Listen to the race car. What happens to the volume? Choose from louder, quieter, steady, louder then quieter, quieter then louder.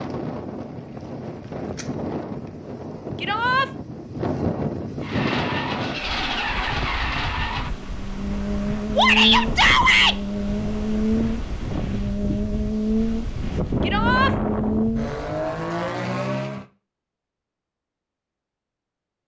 steady.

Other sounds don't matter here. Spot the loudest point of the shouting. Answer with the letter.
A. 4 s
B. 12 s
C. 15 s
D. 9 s
D.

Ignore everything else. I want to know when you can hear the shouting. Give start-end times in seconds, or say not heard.
3.2-3.6, 8.9-10.2, 13.8-14.3.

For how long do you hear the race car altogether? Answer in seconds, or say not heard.
12 s.